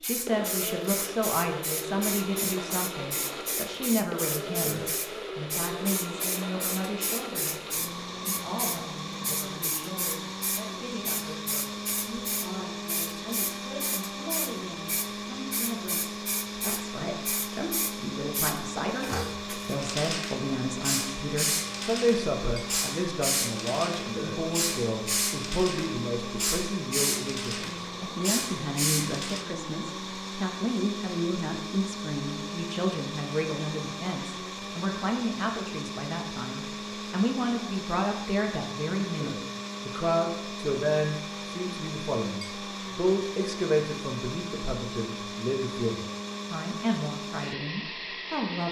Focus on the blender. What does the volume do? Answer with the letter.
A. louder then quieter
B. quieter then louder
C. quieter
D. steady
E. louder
D.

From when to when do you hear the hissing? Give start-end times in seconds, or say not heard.
0.0-29.4.